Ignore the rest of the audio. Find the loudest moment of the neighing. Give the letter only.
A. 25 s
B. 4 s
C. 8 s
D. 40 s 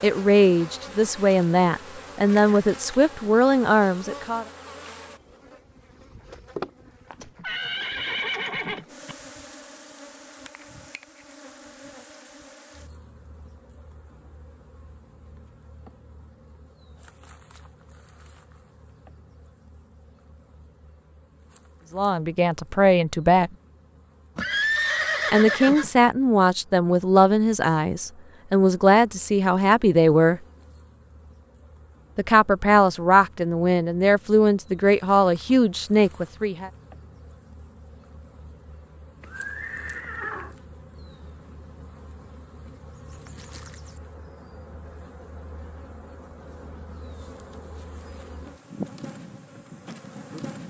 A.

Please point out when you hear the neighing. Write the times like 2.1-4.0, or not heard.
7.2-9.2, 24.4-25.9, 39.2-40.5.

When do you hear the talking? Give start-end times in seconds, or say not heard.
0.0-4.5, 21.9-23.5, 25.3-30.4, 32.1-36.7.